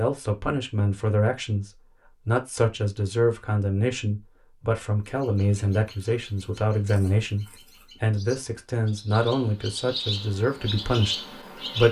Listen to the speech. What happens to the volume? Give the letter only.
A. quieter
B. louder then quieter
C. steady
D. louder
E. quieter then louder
C.